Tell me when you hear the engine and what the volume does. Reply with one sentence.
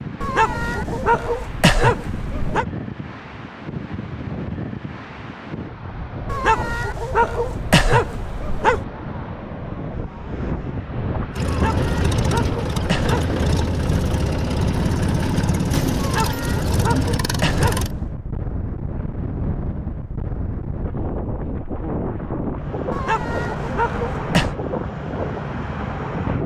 You can hear the engine from 11.3 to 17.9 s, at a steady volume.